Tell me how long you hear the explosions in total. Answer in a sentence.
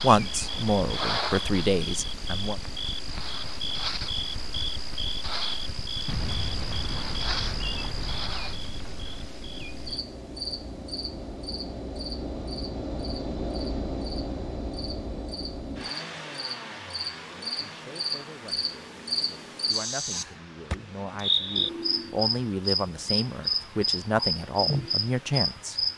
You can hear the explosions for 3 seconds altogether.